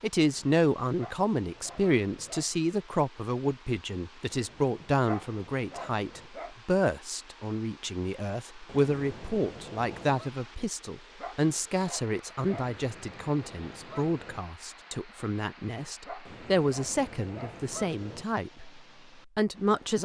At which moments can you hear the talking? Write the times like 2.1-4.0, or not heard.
0.0-19.9.